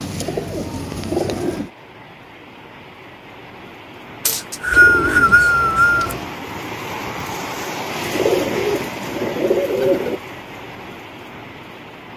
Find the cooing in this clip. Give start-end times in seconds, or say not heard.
0.0-1.7, 4.7-6.3, 8.1-10.2.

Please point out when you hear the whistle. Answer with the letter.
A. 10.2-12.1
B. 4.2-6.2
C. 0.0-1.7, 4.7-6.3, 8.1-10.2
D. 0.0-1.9
B.